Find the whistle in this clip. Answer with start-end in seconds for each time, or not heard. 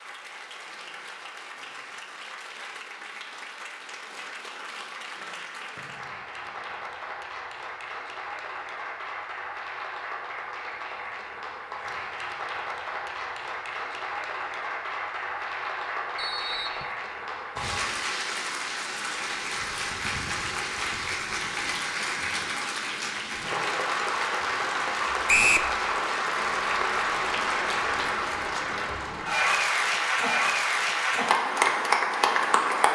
5.8-7.0, 16.1-16.9, 25.2-25.7.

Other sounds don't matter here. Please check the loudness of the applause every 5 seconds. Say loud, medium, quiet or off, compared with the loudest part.
quiet, quiet, medium, medium, medium, loud, loud.